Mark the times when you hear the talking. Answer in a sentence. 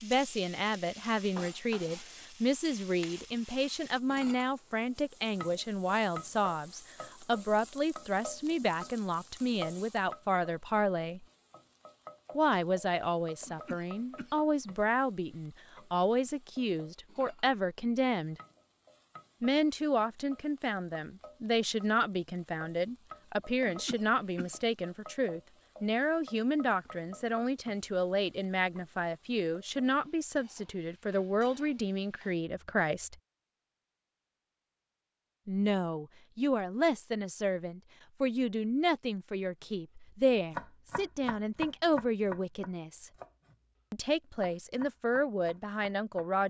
The talking can be heard from 0.0 to 11.2 s, from 12.3 to 18.4 s, from 19.4 to 33.1 s, from 35.5 to 43.1 s and from 43.9 to 46.4 s.